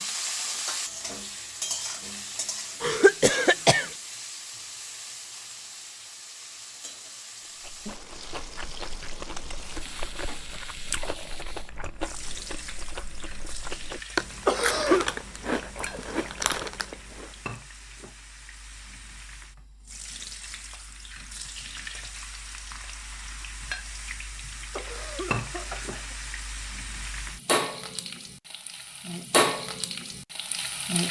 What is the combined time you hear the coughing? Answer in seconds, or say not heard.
3 s.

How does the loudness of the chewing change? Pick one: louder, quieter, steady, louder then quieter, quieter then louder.
louder.